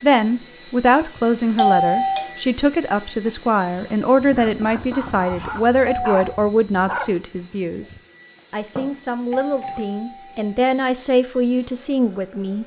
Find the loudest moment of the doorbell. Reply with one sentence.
The loudest moment of the doorbell is at 2 seconds.